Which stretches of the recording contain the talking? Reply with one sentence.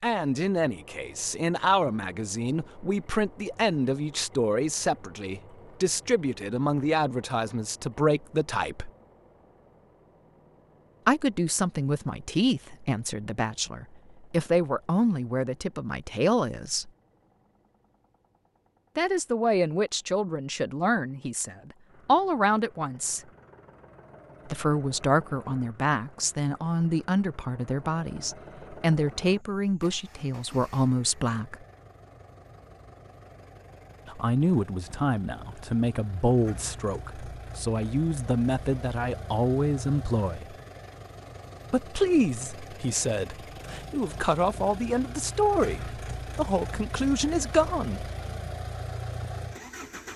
You can hear the talking from 0.0 to 8.9 s, from 11.1 to 16.9 s, from 18.9 to 23.2 s, from 24.4 to 31.6 s, from 34.0 to 40.5 s and from 41.7 to 48.0 s.